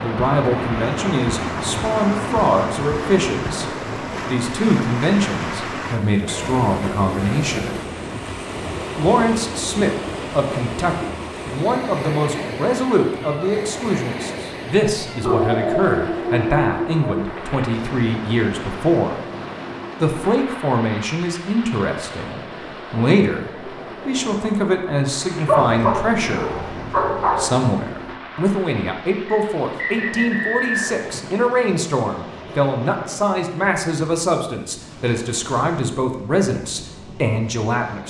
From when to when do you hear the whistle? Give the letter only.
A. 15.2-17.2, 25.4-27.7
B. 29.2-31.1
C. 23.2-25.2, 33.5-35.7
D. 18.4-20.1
B.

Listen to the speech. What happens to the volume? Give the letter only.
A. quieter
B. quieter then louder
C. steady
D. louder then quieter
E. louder
C.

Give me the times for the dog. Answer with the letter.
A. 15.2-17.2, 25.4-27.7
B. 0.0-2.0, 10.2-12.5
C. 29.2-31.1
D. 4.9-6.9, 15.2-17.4
A.